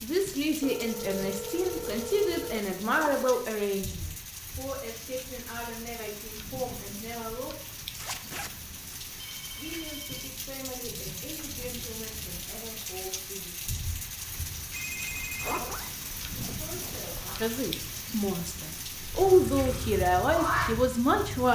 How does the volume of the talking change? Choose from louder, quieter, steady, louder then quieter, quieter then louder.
quieter then louder.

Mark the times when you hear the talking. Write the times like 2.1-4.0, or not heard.
0.0-7.5, 9.6-13.6, 16.6-21.5.